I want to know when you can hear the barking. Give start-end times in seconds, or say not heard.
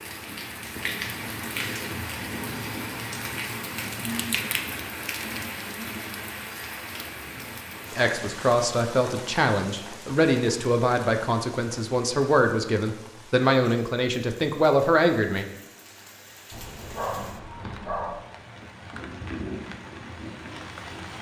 16.5-18.1.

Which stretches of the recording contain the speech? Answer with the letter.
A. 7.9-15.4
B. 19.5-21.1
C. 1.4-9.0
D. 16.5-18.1
A.